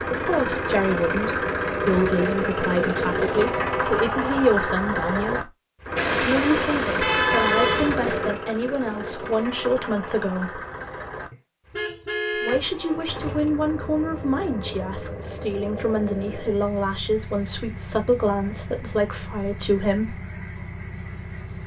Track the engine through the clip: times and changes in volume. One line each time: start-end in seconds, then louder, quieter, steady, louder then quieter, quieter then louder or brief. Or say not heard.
0.0-21.6 quieter.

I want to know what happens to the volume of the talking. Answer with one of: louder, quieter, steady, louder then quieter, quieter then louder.
steady.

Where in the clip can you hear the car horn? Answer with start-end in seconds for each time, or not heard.
6.0-8.0, 11.3-12.6.